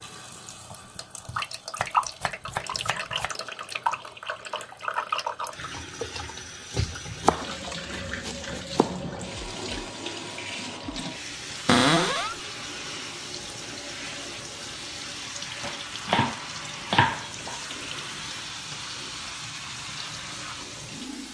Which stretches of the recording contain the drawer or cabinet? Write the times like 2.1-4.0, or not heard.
11.7-12.3.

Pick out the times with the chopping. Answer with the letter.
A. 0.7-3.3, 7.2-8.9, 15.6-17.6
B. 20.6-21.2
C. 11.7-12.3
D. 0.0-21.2
A.